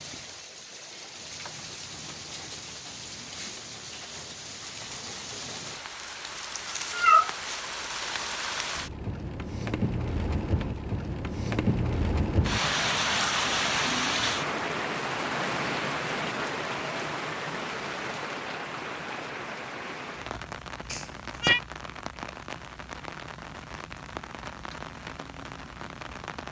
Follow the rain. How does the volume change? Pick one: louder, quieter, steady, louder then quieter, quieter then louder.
louder then quieter.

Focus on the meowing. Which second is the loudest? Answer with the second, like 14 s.
7 s.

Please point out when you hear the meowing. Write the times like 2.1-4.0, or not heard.
6.9-7.3, 20.9-21.6.